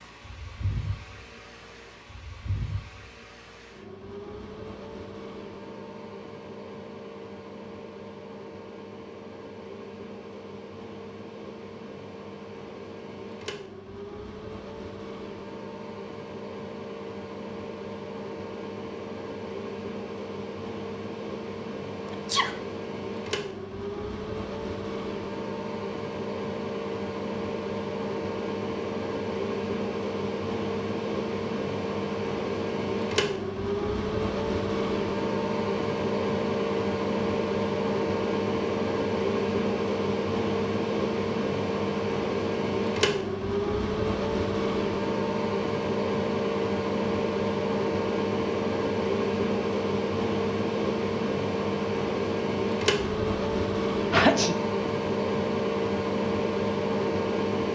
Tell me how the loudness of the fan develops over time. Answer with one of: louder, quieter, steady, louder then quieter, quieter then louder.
louder.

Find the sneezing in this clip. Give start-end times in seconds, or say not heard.
22.1-22.6, 54.1-54.5.